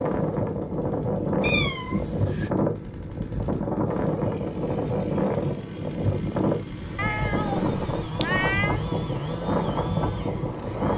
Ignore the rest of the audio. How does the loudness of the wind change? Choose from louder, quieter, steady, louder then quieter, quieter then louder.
steady.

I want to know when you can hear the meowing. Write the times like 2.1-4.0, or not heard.
1.4-2.5, 7.0-8.8.